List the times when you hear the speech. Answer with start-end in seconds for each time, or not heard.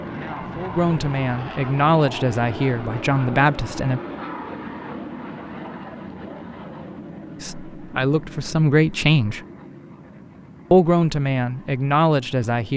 0.0-4.0, 7.4-9.4, 10.7-12.7.